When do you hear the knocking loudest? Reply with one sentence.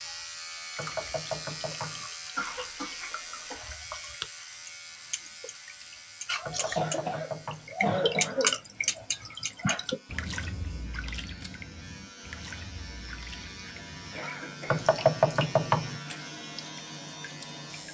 The volume of the knocking peaks at 15 seconds.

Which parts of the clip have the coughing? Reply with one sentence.
The coughing can be heard from 2.4 to 3.7 s, from 6.5 to 8.6 s and from 14.1 to 14.9 s.